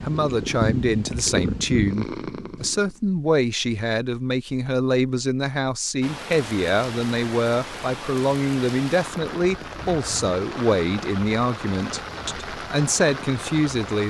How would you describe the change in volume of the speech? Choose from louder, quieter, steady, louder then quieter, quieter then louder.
steady.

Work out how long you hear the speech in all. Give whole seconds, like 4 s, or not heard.
14 s.